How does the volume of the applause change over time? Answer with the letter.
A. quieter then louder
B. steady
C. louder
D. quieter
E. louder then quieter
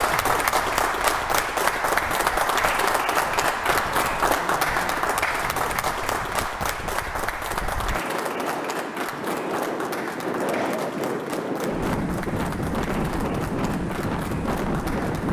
D.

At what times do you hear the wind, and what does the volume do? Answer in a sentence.
The wind can be heard from 0.0 to 15.2 s, getting louder.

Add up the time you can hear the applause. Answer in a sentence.
You can hear the applause for 15 seconds altogether.